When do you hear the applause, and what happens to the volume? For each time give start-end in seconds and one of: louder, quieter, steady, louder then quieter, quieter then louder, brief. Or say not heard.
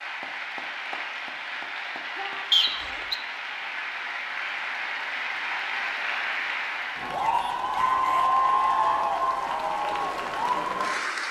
0.0-11.2 louder.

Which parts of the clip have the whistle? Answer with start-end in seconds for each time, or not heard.
2.5-3.1.